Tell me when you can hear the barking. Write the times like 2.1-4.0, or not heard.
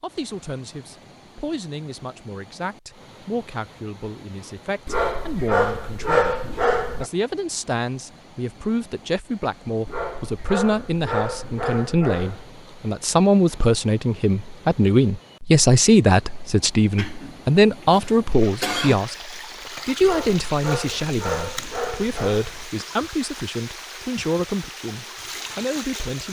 4.8-7.1, 9.8-12.5, 20.0-22.8.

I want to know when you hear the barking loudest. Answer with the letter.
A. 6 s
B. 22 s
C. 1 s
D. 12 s
A.